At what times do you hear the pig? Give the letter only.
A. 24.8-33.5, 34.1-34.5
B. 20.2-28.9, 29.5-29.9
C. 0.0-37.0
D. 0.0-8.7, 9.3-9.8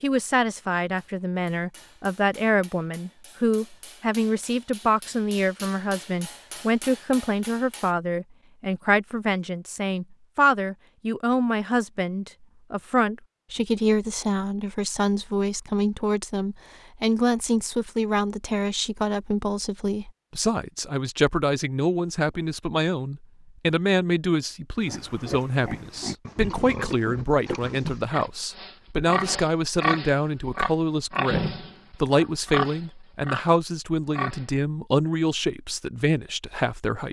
A.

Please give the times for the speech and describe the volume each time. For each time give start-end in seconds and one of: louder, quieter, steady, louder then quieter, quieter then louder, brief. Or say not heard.
0.0-37.0 steady.